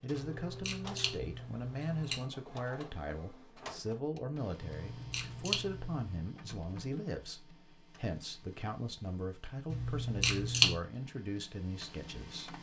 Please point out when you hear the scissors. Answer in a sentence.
The scissors can be heard from 0.1 to 2.3 s, from 4.7 to 6.1 s and from 9.7 to 10.8 s.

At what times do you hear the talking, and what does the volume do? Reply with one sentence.
You can hear the talking from 0.0 to 12.5 s, at a steady volume.